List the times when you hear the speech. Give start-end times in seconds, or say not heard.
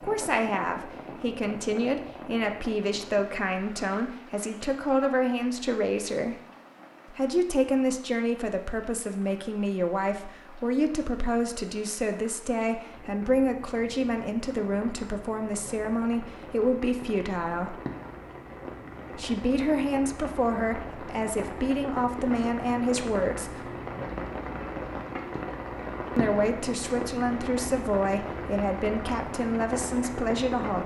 0.0-6.3, 7.0-17.8, 19.1-23.7, 26.1-30.8.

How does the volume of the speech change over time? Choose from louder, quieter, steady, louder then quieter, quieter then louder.
steady.